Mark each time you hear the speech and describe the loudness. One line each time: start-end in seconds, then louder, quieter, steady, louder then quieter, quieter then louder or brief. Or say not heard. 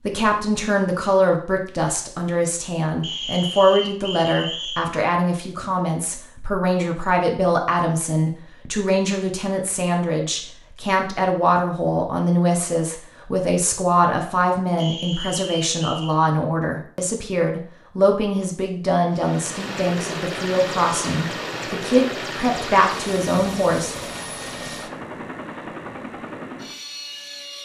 0.0-23.9 steady.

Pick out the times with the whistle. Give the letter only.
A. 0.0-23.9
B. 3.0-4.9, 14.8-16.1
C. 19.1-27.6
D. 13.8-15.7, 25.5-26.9
B.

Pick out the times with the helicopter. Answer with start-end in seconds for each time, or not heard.
19.1-27.6.